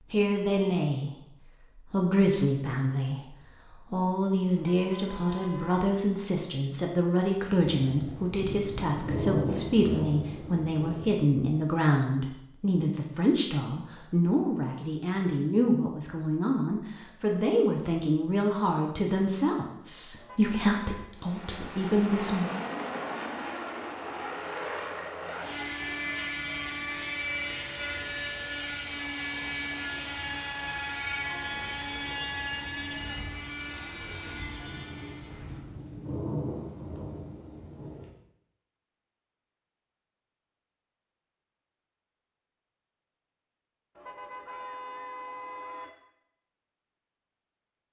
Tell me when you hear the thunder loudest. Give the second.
9 s.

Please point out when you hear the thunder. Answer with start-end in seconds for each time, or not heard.
7.8-11.1, 34.6-38.1.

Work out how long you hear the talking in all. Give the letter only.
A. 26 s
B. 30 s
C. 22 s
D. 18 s
C.